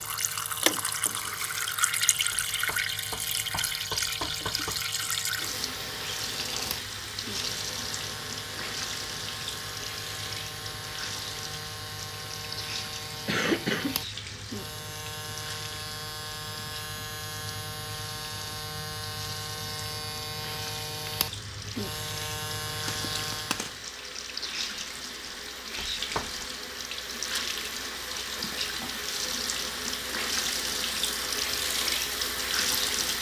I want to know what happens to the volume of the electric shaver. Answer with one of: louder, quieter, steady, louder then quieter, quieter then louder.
louder.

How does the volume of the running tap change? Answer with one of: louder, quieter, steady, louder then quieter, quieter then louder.
quieter then louder.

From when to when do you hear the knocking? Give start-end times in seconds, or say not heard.
2.3-4.8, 25.8-26.4.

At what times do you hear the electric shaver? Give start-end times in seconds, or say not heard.
0.0-23.8.